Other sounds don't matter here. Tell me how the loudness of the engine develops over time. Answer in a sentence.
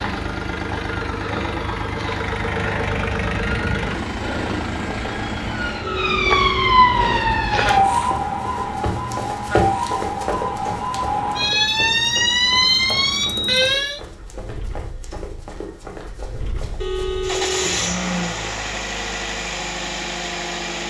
The volume of the engine goes down, then up.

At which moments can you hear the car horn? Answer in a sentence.
The car horn can be heard from 5.8 to 6.8 s and from 16.8 to 17.9 s.